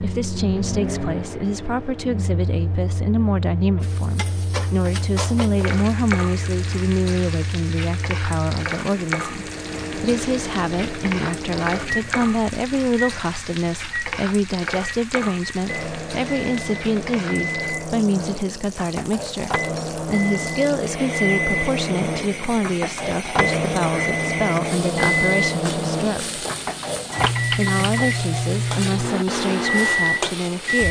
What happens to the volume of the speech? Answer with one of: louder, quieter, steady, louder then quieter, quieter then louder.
steady.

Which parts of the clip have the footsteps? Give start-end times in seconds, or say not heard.
not heard.